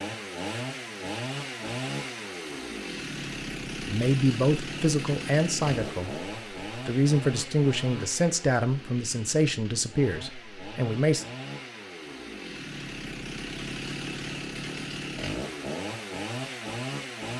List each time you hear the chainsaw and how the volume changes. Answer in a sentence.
The chainsaw can be heard from 0.0 to 17.3 s, getting quieter then louder.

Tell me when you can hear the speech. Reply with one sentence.
You can hear the speech from 3.8 to 11.2 s.